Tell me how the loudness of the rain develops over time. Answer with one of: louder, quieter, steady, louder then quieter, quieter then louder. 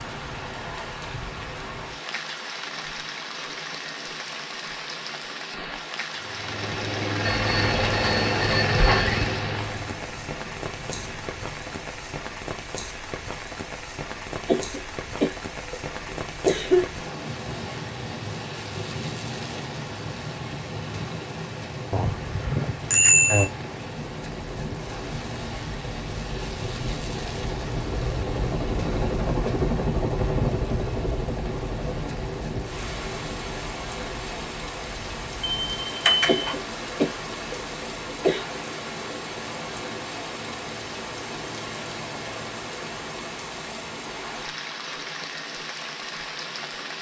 steady.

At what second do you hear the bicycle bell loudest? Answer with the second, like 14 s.
23 s.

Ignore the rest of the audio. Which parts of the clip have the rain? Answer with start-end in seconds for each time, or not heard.
0.0-46.9.